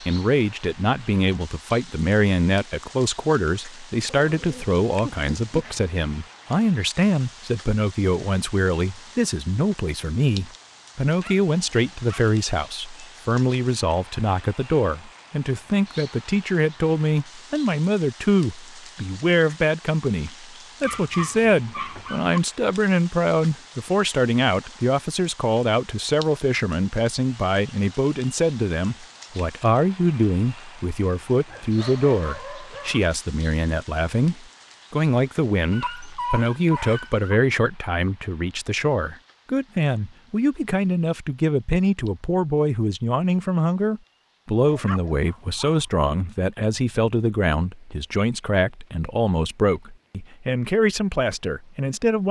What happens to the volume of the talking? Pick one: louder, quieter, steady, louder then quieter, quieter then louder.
steady.